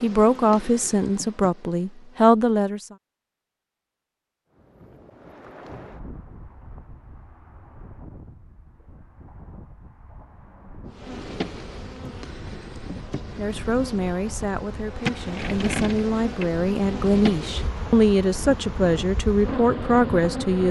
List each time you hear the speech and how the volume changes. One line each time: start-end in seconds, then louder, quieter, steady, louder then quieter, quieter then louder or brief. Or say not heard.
0.0-3.0 brief
13.3-20.6 louder.